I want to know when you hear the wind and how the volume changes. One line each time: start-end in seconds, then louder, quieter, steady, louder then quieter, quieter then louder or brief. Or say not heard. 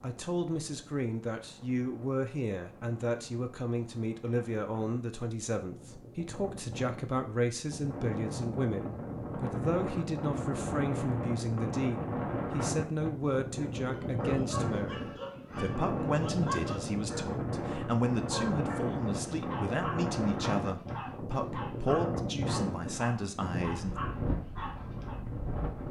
0.0-25.8 louder.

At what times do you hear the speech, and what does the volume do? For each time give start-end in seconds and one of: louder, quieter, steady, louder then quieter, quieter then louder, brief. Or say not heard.
0.0-23.9 steady.